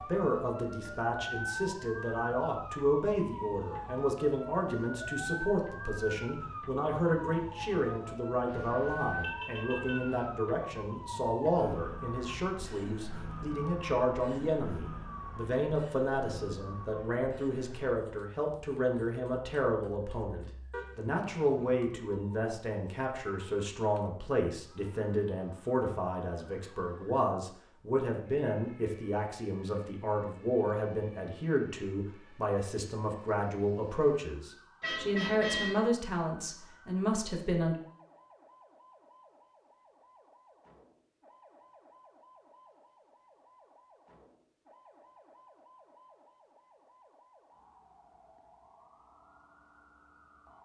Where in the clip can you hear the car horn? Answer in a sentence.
You can hear the car horn from 8.4 to 10.3 s, from 20.7 to 21.8 s and from 34.8 to 35.8 s.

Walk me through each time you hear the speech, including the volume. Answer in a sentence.
The speech can be heard from 0.0 to 37.8 s, at a steady volume.